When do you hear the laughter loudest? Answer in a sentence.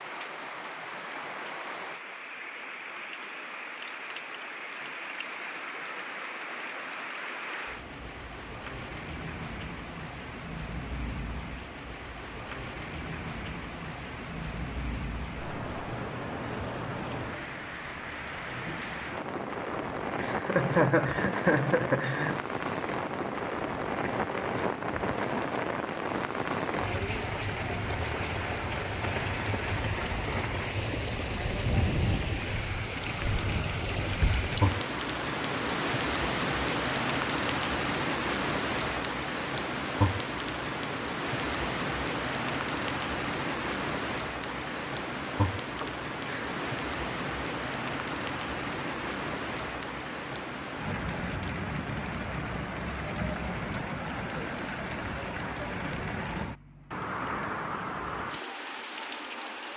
The loudest moment of the laughter is at 21 seconds.